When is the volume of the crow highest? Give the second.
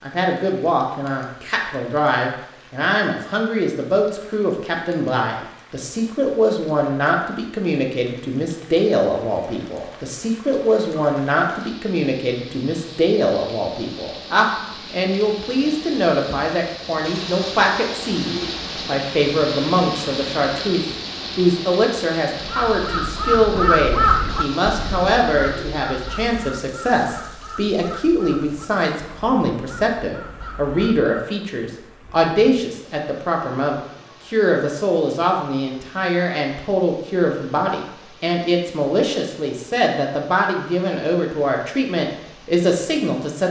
24 s.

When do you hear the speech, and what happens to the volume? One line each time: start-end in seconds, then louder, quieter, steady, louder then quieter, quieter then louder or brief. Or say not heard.
0.0-43.4 steady.